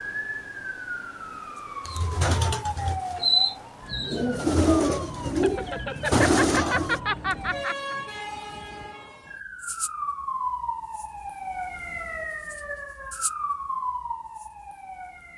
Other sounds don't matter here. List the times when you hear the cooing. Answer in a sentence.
The cooing can be heard from 1.9 to 7.0 s.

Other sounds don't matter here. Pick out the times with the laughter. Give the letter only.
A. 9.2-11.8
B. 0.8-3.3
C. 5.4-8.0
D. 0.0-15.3
C.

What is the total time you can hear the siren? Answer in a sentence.
The siren can be heard for 15 seconds in total.